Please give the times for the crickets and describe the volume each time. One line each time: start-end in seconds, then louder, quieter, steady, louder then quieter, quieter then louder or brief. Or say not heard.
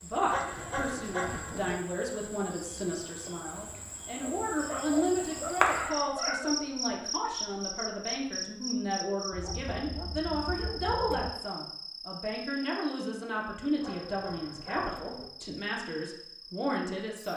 0.0-17.3 louder then quieter.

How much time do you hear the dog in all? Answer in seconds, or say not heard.
7 s.